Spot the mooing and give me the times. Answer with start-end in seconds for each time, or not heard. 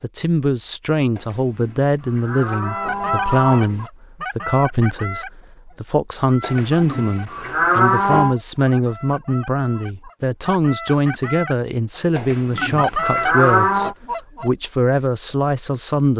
1.1-3.9, 6.4-8.3, 12.2-13.9.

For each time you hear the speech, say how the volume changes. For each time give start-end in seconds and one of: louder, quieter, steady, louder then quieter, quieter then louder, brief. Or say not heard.
0.0-16.1 steady.